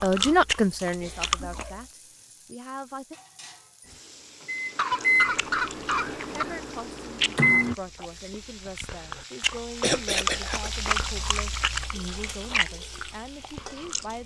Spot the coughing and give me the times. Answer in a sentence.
The coughing can be heard from 1.0 to 1.8 s, from 4.8 to 6.5 s and from 9.8 to 10.7 s.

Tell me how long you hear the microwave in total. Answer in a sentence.
You can hear the microwave for 4 seconds altogether.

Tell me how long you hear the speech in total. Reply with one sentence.
The speech can be heard for 11 seconds in total.